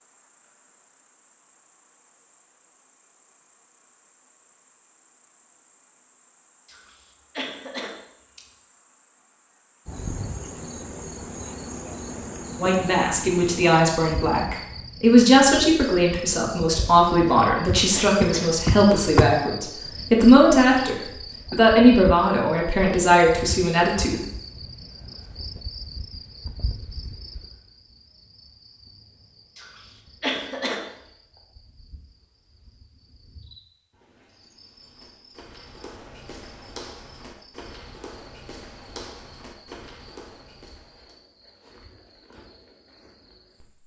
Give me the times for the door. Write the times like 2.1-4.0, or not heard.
17.6-19.3.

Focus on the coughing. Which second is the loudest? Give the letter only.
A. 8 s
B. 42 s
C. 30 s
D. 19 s
C.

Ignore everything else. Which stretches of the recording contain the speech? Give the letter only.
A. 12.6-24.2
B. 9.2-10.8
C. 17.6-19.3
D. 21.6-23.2
A.